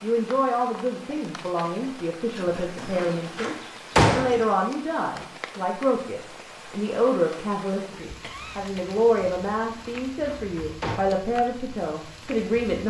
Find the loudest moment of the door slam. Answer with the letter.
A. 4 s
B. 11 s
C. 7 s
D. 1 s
A.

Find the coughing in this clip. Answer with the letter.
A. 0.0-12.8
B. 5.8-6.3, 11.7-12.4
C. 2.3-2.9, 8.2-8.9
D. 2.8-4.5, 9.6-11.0
C.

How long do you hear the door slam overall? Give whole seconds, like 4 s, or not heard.
3 s.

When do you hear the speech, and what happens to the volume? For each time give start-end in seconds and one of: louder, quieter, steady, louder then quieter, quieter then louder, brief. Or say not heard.
0.0-12.8 steady.